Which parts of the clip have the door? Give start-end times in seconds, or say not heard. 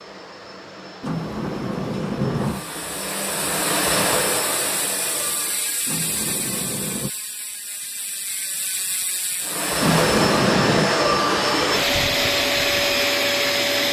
1.0-2.6, 5.8-7.1, 9.8-10.9.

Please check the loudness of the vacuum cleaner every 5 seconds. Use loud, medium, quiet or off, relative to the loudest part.
medium, medium, loud.